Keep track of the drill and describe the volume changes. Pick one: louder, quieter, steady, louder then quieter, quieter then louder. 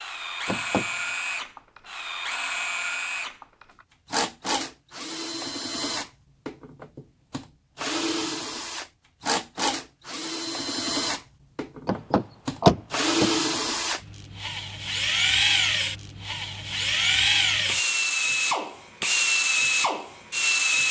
louder.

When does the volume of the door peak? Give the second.
13 s.